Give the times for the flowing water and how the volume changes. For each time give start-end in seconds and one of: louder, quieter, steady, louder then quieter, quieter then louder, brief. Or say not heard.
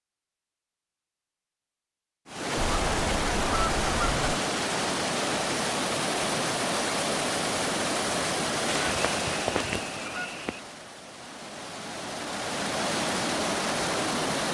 2.2-14.4 quieter then louder.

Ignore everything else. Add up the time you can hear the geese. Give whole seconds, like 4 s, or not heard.
4 s.